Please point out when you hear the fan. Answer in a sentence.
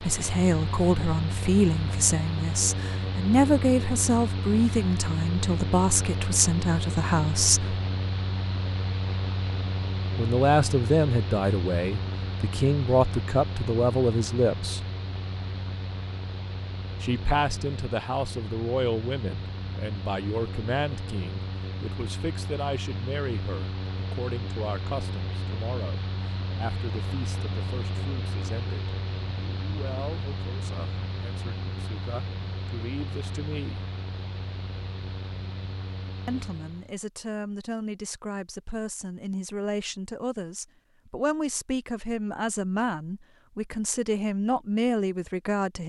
The fan can be heard from 0.0 to 37.0 s.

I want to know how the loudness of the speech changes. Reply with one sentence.
The volume of the speech goes down, then up.